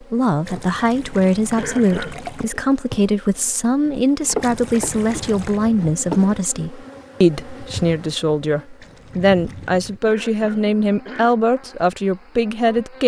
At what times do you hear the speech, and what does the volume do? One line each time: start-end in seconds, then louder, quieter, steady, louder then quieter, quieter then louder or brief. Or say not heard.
0.0-13.0 steady.